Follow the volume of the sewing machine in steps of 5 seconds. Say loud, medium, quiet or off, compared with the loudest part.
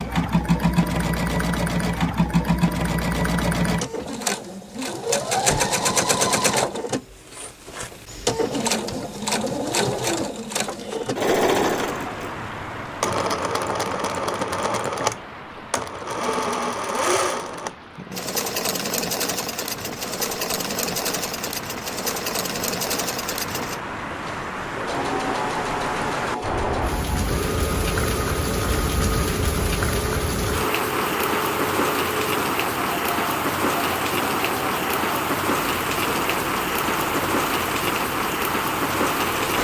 loud, loud, loud, loud, medium, medium, medium, medium.